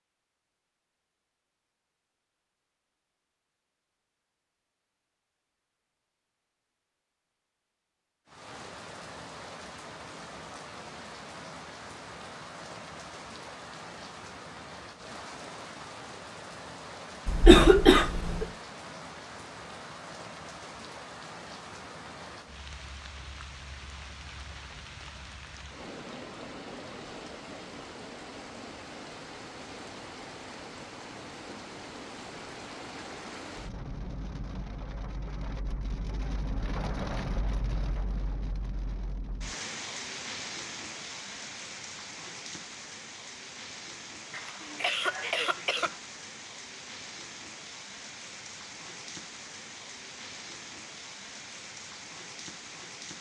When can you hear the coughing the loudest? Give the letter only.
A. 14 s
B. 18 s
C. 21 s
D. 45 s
B.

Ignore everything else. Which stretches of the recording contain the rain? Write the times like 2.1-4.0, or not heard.
8.2-53.1.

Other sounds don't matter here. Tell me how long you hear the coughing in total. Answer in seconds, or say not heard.
3 s.